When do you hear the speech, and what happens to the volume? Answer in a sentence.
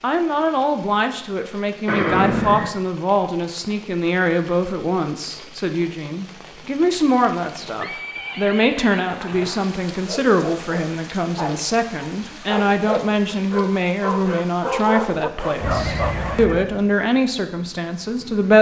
You can hear the speech from 0.0 to 18.5 s, at a steady volume.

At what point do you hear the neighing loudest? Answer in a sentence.
The loudest moment of the neighing is at 2 seconds.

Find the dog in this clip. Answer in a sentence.
The dog can be heard from 10.0 to 16.6 s.